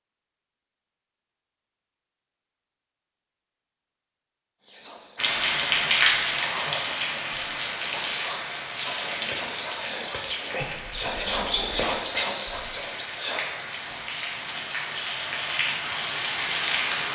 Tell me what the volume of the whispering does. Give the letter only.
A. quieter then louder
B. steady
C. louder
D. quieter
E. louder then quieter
C.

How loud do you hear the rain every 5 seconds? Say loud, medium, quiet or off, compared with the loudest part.
off, loud, medium, loud.